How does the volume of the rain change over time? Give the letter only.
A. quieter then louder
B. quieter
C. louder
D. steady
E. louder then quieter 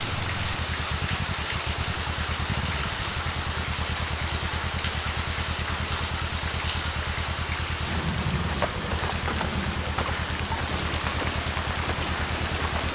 D.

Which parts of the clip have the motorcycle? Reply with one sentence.
You can hear the motorcycle from 0.0 to 12.8 s.